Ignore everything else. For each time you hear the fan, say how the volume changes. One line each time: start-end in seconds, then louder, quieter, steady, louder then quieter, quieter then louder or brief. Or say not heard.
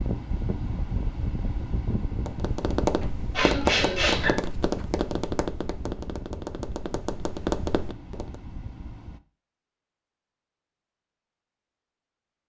0.0-9.2 quieter.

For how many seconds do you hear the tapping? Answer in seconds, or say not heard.
6 s.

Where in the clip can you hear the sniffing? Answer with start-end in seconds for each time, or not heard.
3.3-4.3.